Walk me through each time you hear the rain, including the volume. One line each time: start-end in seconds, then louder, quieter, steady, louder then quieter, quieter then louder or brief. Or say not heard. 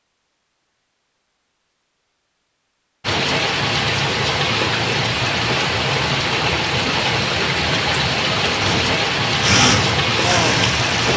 3.0-11.1 steady.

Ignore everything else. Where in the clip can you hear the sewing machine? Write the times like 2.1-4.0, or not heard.
8.6-11.1.